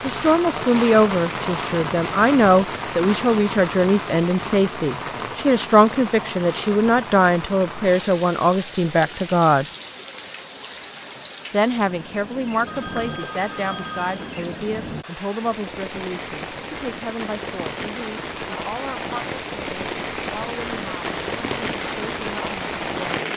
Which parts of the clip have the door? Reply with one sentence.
The door can't be heard in this clip.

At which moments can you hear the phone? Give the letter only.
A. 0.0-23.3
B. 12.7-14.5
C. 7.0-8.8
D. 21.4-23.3
B.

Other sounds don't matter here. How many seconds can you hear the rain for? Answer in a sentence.
The rain can be heard for 23 seconds in total.